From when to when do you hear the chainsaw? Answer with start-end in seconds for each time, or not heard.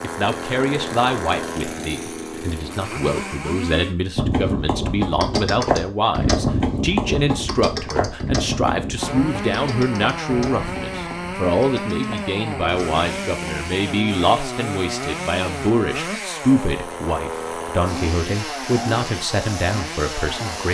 0.0-4.0, 8.9-20.6.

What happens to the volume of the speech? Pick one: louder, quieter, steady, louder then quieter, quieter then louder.
steady.